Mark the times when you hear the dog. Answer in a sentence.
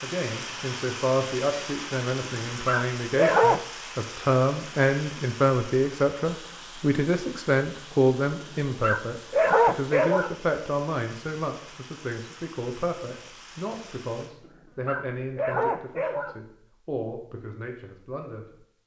You can hear the dog from 2.2 to 3.6 s, from 8.4 to 10.3 s and from 14.4 to 16.4 s.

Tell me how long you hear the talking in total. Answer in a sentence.
The talking can be heard for 19 seconds in total.